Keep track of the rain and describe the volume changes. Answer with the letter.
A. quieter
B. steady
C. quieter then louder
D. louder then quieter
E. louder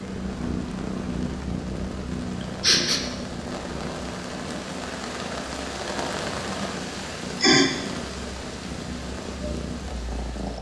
D.